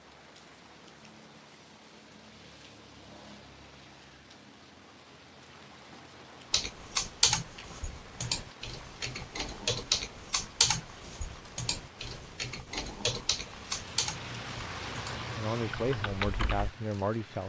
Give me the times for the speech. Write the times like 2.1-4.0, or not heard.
15.3-17.4.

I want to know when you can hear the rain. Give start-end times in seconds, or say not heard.
0.0-17.4.